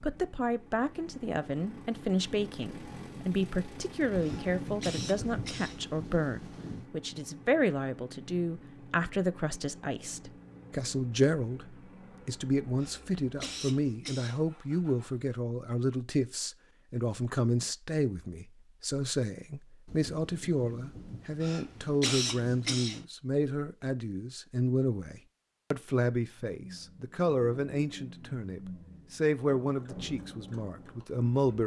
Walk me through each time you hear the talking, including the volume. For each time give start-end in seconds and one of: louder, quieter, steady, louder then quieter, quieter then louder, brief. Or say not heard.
0.0-31.6 steady.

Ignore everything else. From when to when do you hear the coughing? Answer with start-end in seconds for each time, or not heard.
4.2-5.8, 12.8-14.4, 21.4-23.1.